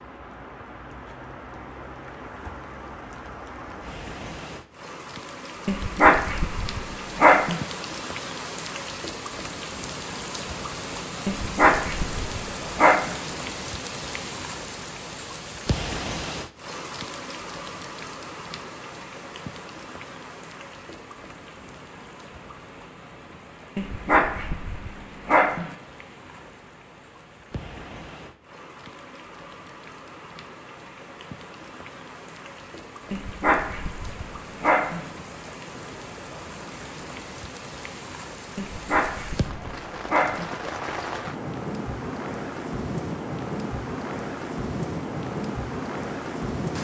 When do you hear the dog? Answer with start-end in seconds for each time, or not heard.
5.7-7.7, 11.2-13.2, 23.8-25.8, 33.1-35.1, 38.5-40.5.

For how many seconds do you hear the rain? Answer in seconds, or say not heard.
47 s.